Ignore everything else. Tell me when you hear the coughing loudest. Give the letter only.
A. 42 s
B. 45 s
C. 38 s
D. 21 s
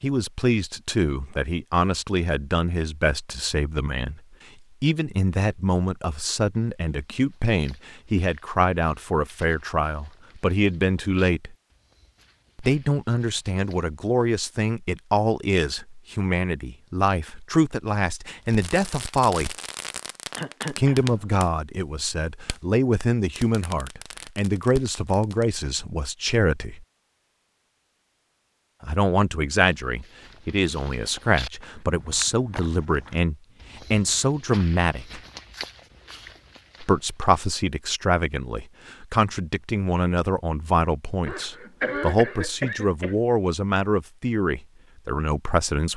A.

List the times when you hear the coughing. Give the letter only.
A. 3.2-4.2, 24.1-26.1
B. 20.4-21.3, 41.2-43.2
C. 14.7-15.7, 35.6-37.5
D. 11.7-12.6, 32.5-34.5
B.